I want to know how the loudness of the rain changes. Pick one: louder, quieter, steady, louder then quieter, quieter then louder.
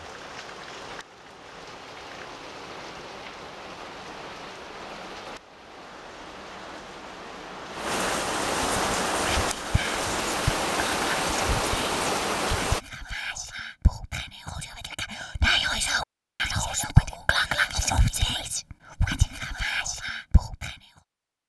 louder.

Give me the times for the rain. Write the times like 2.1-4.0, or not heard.
0.0-12.8.